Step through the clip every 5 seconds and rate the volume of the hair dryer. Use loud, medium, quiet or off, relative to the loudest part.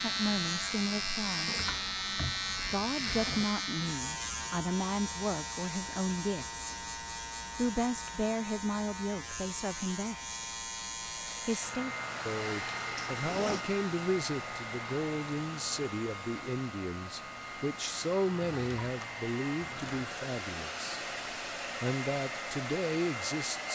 off, off, loud, medium, loud.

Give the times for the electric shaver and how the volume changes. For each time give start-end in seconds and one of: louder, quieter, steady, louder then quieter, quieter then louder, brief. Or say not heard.
0.0-23.7 quieter.